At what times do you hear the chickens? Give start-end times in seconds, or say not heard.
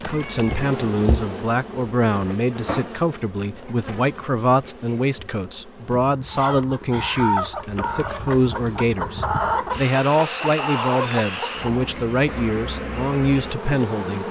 6.3-11.9.